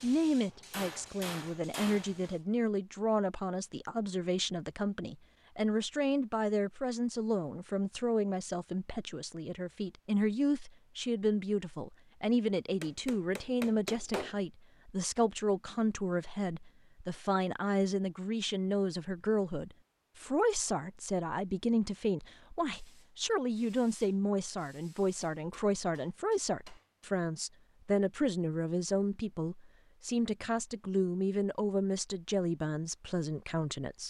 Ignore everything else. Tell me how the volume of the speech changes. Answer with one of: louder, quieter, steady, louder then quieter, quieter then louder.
steady.